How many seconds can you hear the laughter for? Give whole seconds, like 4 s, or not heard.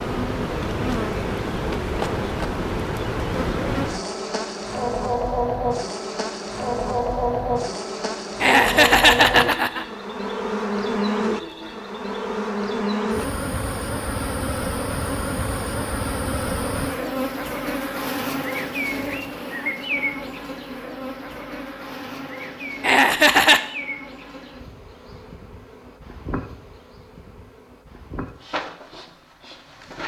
2 s.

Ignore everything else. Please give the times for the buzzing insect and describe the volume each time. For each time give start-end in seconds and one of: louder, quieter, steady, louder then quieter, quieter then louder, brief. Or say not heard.
0.0-30.0 quieter.